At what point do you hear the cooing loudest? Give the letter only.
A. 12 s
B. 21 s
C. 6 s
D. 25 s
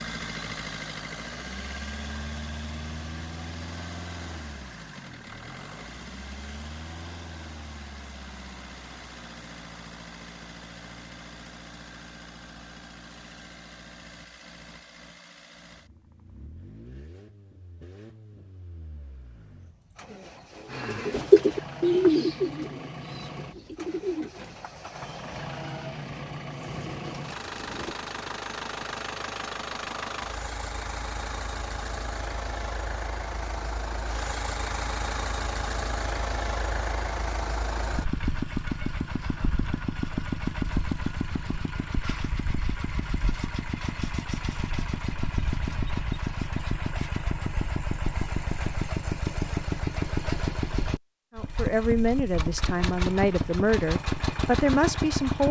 B.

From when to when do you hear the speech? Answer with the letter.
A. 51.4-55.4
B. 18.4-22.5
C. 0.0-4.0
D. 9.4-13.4
A.